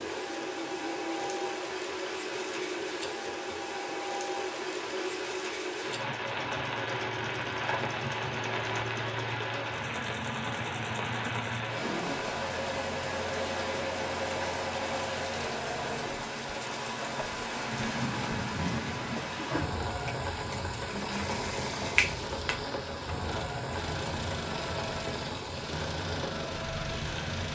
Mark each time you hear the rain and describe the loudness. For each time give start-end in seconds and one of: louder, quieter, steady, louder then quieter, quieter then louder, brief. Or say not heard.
0.0-27.5 steady.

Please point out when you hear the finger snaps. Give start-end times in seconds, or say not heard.
21.9-22.6.